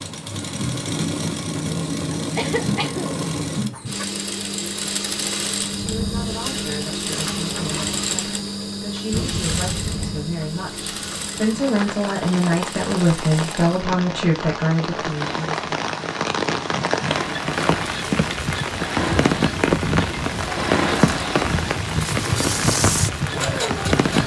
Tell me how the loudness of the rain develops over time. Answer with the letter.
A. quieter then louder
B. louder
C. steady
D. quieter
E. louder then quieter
B.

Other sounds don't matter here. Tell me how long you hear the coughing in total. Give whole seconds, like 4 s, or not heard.
2 s.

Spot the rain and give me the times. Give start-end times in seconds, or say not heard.
5.7-24.2.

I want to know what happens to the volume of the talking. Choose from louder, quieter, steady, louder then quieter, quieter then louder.
louder.